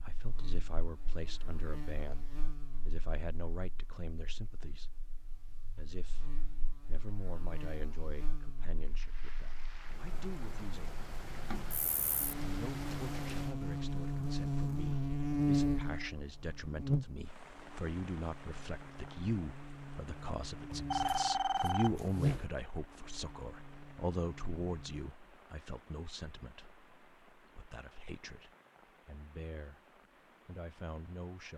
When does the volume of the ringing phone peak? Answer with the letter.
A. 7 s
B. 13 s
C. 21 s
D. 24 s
C.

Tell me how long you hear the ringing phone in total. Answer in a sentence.
You can hear the ringing phone for 2 seconds altogether.